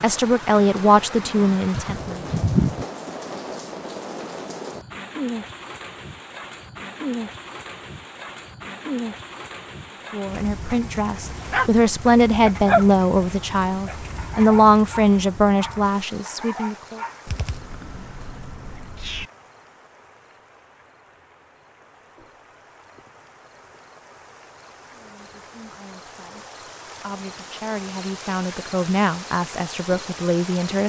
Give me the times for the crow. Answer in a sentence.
The crow can't be heard in this clip.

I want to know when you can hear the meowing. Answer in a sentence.
The meowing can be heard from 1.7 to 2.9 s and from 17.2 to 19.3 s.